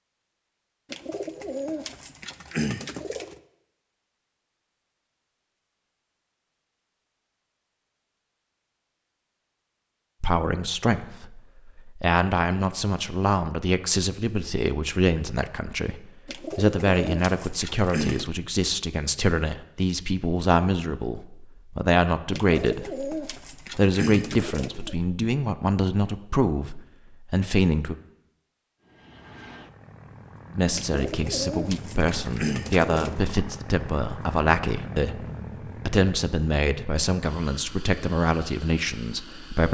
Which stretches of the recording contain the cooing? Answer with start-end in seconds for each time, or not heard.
0.9-3.4, 16.2-18.3, 22.3-24.9, 30.8-33.2.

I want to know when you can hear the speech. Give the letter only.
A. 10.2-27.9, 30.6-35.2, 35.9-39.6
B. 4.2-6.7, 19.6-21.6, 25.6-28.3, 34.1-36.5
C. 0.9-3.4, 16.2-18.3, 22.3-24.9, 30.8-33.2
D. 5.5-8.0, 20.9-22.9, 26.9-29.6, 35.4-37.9
A.